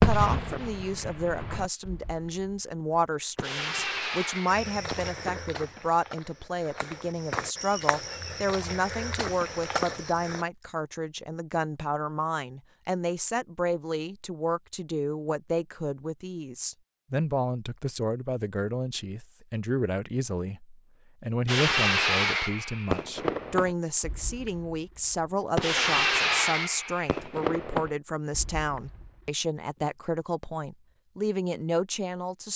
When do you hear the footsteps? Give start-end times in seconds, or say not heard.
4.5-10.4.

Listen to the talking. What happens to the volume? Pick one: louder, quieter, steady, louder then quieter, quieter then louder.
steady.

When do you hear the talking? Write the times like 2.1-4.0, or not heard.
0.0-32.5.